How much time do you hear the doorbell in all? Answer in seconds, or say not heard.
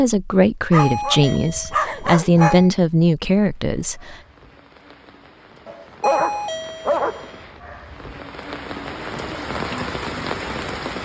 3 s.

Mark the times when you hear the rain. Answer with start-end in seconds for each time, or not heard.
3.5-10.9.